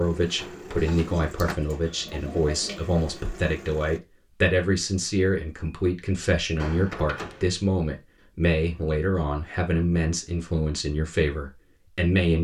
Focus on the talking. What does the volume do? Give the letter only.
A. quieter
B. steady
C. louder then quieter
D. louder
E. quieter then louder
B.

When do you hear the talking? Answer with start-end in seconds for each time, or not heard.
0.0-12.4.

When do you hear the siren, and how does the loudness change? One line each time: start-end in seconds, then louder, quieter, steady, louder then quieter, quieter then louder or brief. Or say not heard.
not heard.